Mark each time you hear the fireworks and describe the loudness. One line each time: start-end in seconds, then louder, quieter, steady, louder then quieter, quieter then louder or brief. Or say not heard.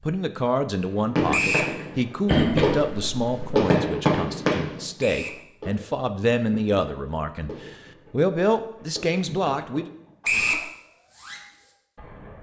0.9-12.3 quieter.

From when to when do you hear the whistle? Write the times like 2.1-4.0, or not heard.
1.3-1.8, 5.0-5.4, 10.2-10.7.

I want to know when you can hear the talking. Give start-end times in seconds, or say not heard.
0.0-9.9.